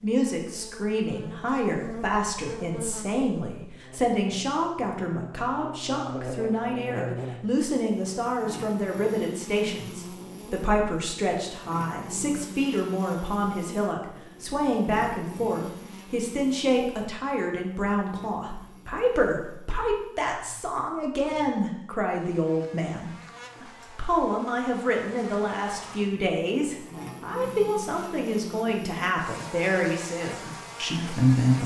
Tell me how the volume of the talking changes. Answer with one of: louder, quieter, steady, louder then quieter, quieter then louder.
steady.